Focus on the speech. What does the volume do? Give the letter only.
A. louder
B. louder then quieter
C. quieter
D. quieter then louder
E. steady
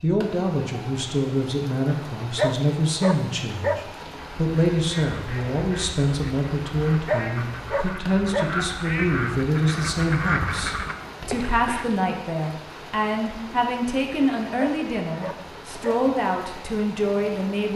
E.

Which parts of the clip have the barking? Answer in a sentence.
You can hear the barking from 2.4 to 3.9 s, from 7.0 to 8.6 s and from 14.6 to 16.1 s.